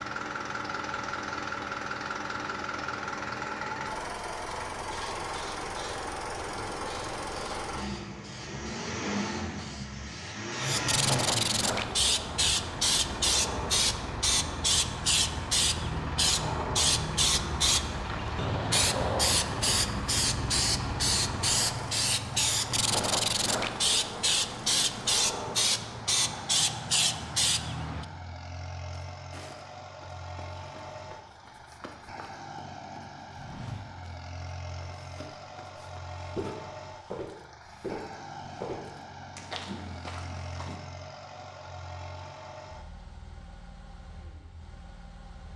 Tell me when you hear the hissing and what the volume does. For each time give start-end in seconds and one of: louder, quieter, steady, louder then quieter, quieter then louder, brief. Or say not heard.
4.5-28.1 louder.